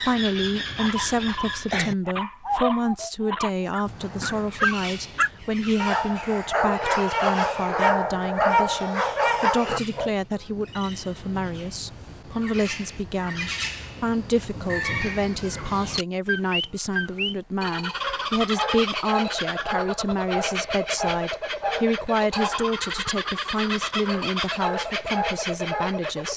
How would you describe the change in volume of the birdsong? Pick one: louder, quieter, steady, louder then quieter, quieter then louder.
quieter then louder.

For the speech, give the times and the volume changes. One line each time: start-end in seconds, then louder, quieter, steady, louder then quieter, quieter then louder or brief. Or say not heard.
0.0-26.3 steady.